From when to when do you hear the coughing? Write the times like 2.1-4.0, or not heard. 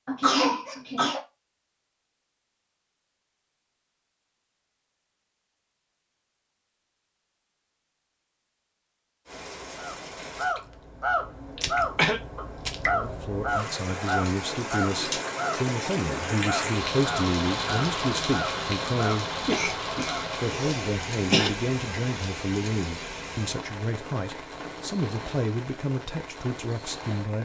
0.1-1.2, 11.6-12.2, 19.4-21.5.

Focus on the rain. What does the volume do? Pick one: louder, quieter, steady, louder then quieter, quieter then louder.
louder then quieter.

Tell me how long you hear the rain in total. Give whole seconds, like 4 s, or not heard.
18 s.